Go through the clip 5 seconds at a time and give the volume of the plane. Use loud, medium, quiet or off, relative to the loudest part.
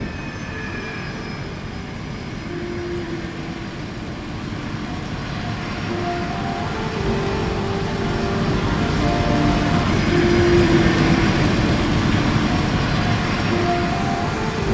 medium, loud, loud.